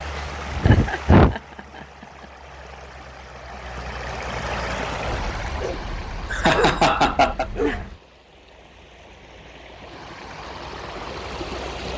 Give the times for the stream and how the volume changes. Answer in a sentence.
The stream can be heard from 0.0 to 11.9 s, getting quieter then louder.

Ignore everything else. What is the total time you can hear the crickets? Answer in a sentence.
You can't hear the crickets here.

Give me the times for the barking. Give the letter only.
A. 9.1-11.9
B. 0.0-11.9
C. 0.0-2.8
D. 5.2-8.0
D.